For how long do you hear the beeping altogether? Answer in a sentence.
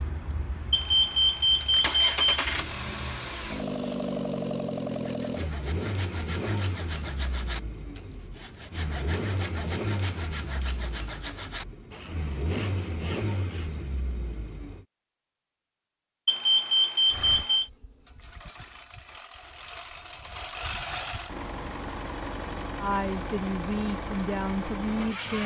The beeping can be heard for 3 seconds in total.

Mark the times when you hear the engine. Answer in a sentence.
You can hear the engine from 0.0 to 14.8 s and from 17.1 to 25.4 s.